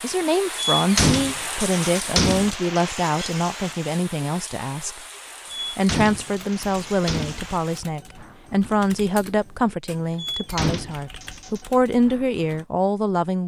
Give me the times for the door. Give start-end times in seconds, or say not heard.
0.6-2.5, 5.7-7.5, 10.2-11.7.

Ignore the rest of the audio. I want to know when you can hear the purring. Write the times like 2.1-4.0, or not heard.
not heard.